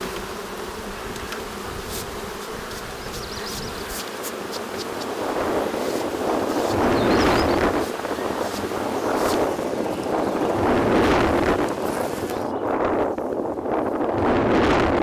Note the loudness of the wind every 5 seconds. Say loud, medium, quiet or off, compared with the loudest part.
quiet, loud, loud.